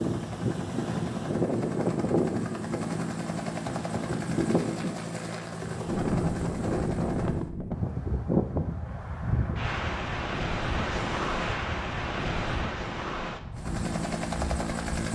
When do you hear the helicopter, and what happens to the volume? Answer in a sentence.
The helicopter can be heard from 0.0 to 7.5 s, at a steady volume; and briefly from 13.5 to 15.1 s.